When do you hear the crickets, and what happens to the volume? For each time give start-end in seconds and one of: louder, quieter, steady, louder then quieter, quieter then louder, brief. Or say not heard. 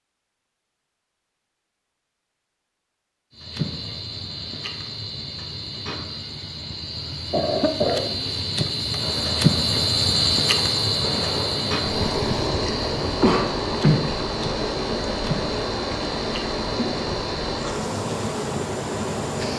3.3-19.5 louder then quieter.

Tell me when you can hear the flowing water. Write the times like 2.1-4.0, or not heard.
8.9-19.5.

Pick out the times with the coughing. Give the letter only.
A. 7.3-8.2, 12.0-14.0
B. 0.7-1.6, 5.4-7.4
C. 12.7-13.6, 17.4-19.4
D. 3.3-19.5
A.